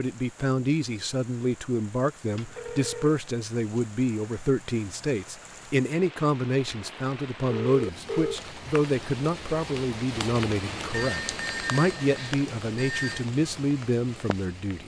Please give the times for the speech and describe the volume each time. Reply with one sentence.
The speech can be heard from 0.0 to 14.8 s, at a steady volume.